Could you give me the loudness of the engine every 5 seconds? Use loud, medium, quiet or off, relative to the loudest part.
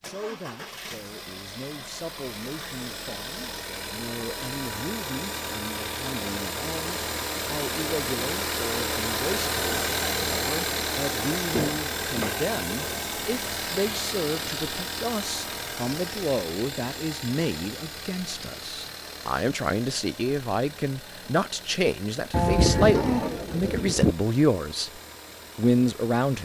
medium, loud, loud, medium, quiet, quiet.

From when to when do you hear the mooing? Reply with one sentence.
You can hear the mooing from 22.3 to 24.1 s.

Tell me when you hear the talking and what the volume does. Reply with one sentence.
You can hear the talking from 0.0 to 24.9 s, getting louder; and briefly from 25.6 to 26.4 s.